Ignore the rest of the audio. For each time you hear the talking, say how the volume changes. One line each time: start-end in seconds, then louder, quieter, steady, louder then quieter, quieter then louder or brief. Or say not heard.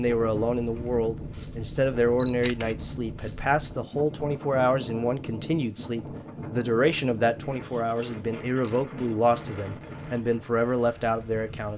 0.0-11.7 steady.